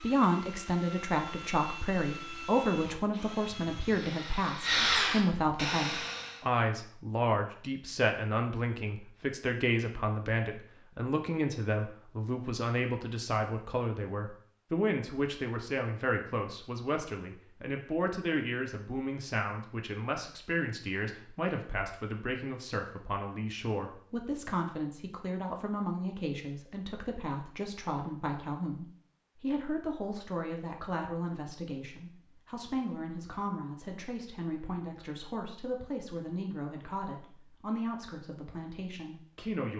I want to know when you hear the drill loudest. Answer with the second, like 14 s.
5 s.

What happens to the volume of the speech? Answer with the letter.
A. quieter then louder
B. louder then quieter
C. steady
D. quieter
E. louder
D.